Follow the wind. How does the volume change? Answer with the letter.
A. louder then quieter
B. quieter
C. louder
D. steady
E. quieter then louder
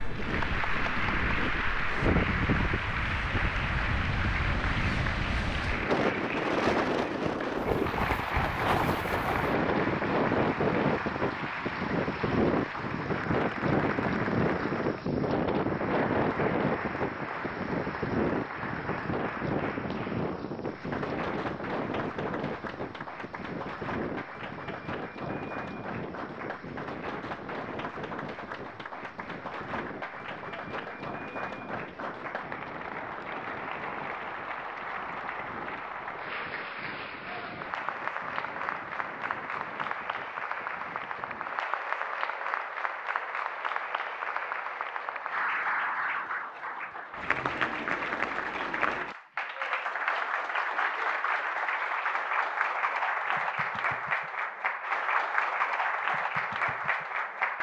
B.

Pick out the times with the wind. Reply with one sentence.
You can hear the wind from 0.0 to 41.6 s.